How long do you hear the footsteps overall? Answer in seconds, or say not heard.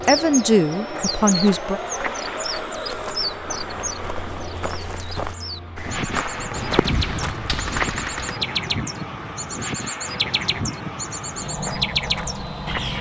9 s.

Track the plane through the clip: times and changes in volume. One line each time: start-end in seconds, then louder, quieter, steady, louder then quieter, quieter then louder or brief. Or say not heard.
0.0-12.9 steady.